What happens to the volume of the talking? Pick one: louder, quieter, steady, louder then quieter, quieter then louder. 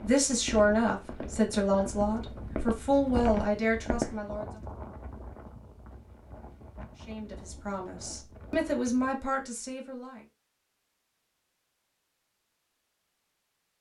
quieter.